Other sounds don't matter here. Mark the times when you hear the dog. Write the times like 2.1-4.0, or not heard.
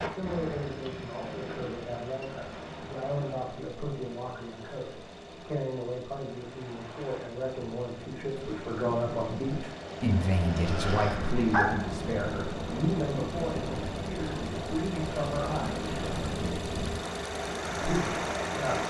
10.7-11.8.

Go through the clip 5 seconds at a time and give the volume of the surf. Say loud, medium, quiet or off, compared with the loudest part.
medium, medium, loud, loud.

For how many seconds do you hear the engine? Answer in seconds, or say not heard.
19 s.